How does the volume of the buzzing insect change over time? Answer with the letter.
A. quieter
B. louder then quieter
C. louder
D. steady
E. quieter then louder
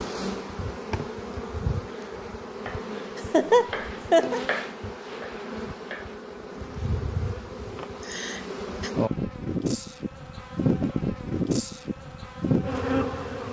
C.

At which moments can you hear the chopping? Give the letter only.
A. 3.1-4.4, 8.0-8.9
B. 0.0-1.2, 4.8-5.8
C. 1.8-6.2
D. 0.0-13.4
C.